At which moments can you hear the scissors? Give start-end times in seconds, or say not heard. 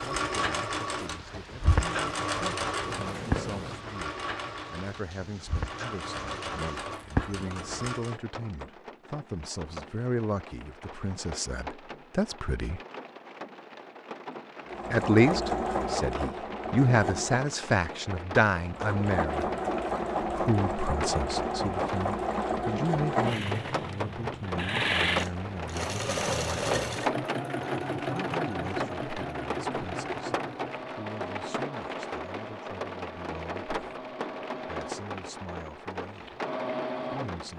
2.8-3.8.